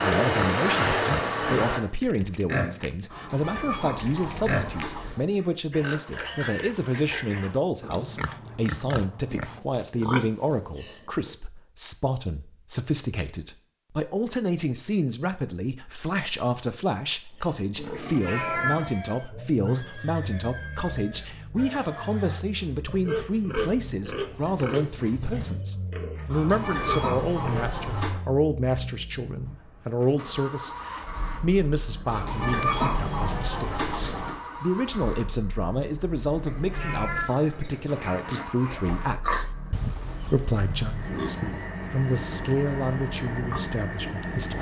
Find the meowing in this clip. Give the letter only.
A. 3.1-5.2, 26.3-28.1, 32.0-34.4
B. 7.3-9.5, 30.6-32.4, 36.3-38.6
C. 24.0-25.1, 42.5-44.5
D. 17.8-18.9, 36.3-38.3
D.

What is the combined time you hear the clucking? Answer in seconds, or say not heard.
6 s.